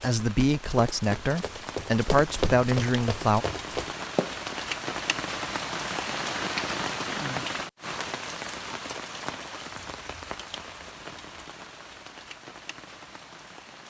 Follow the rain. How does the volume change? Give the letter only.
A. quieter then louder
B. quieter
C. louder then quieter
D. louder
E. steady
C.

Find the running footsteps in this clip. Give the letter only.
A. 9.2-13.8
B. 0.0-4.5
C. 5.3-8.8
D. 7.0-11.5
B.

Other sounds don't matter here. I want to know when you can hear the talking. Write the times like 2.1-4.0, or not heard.
0.0-3.5.